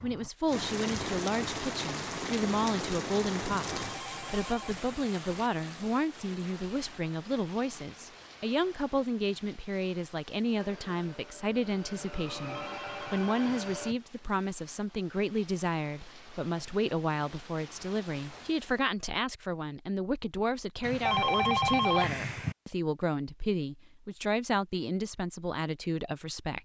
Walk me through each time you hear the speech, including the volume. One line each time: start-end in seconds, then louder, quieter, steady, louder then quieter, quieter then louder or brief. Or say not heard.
0.0-26.5 steady.